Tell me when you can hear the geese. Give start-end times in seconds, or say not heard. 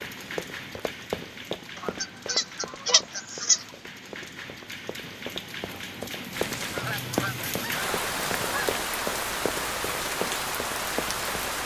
1.8-3.6, 6.3-8.8.